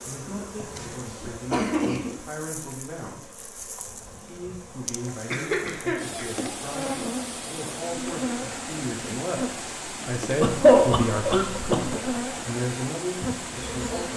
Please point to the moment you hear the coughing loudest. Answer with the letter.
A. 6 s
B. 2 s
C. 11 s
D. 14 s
C.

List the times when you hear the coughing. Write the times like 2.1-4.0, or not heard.
0.7-2.1, 5.3-7.1, 10.4-12.0.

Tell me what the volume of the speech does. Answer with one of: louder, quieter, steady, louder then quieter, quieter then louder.
louder.